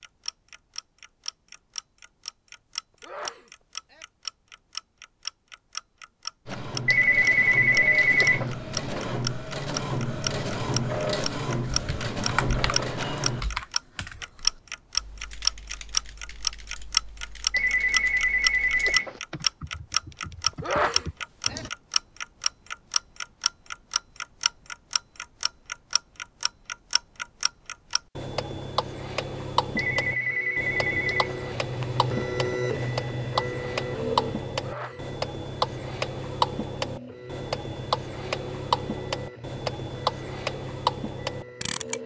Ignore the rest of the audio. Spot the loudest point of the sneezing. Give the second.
21 s.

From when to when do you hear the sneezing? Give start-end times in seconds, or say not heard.
3.0-4.0, 20.6-21.6, 34.6-35.0.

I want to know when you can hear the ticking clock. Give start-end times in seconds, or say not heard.
0.0-42.0.